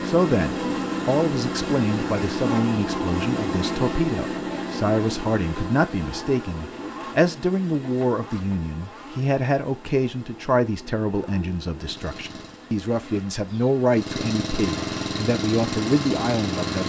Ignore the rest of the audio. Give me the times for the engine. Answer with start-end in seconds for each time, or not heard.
0.0-12.7, 13.9-16.8.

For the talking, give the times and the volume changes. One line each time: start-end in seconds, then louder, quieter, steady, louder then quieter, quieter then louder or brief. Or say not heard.
0.0-16.8 steady.